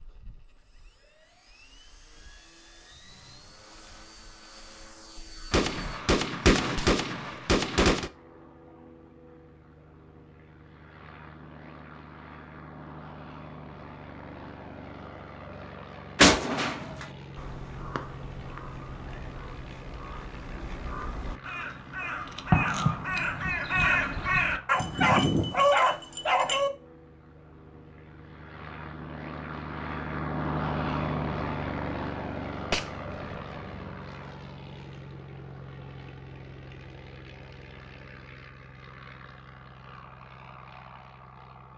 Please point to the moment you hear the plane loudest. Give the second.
31 s.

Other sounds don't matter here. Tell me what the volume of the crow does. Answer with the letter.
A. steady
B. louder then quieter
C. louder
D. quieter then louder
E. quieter
C.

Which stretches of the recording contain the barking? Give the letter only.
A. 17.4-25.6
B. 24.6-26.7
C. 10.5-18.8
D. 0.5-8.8
B.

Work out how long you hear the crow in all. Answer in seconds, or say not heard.
8 s.